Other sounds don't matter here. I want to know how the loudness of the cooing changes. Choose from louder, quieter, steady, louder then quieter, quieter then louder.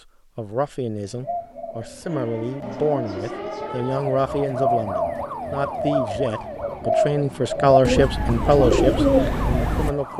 louder.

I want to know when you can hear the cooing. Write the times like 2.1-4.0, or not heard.
1.1-9.9.